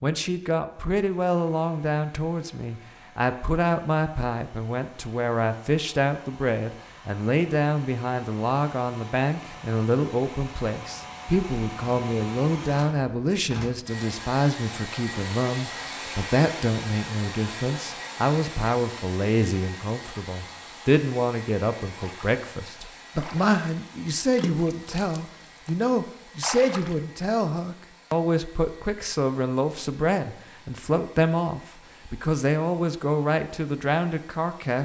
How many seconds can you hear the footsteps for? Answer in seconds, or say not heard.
not heard.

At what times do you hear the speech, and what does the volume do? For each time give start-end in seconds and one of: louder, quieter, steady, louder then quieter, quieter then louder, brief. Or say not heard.
0.0-34.8 steady.